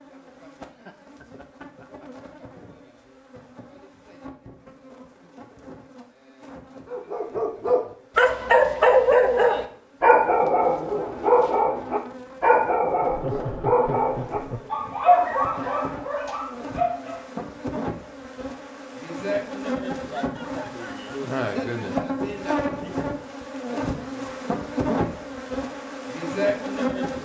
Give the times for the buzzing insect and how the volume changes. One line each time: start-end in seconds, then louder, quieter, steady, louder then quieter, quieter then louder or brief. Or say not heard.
0.0-27.2 louder.